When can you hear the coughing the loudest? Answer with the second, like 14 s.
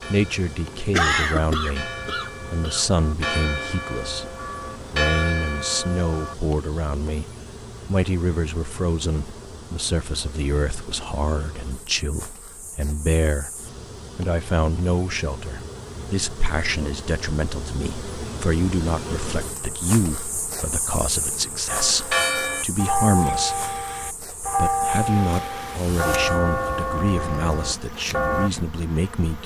1 s.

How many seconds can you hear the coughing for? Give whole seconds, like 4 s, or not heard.
2 s.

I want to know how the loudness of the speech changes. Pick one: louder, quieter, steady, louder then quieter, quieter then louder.
steady.